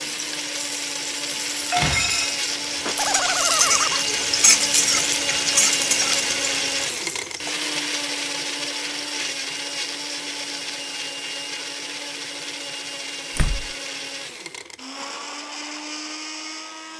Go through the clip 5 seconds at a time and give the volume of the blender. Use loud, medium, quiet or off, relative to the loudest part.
loud, loud, medium, medium.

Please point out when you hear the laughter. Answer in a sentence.
You can hear the laughter from 2.9 to 4.0 s.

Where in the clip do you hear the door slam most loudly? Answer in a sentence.
The loudest moment of the door slam is at 2 seconds.